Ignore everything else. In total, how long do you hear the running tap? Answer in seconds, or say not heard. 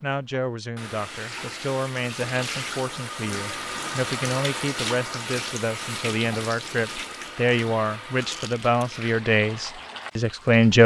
11 s.